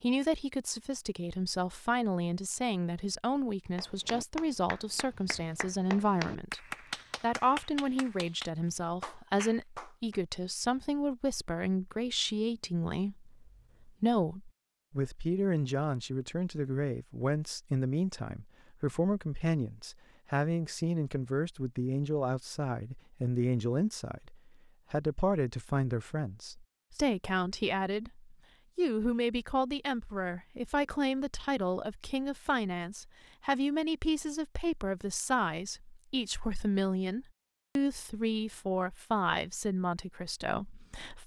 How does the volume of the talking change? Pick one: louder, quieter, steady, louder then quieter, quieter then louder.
steady.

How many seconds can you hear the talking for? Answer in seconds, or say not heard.
41 s.